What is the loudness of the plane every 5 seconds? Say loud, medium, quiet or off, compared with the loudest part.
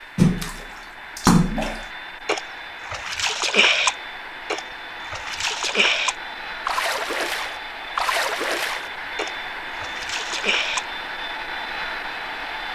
medium, loud, loud.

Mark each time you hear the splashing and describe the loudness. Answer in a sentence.
You can hear the splashing from 0.1 to 10.8 s, getting quieter.